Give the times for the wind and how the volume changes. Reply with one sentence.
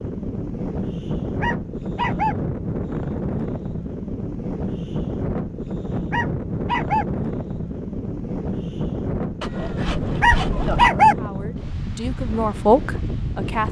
You can hear the wind from 0.0 to 13.6 s, at a steady volume.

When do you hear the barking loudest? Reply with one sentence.
The loudest moment of the barking is at 11 seconds.